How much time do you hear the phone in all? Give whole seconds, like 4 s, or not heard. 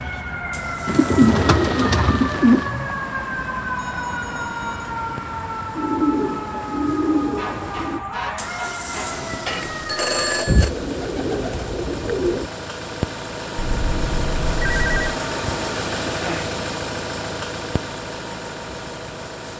4 s.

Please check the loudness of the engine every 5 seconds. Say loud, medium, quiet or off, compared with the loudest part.
quiet, medium, loud, loud.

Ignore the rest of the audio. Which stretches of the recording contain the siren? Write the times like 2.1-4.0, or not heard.
0.0-10.4.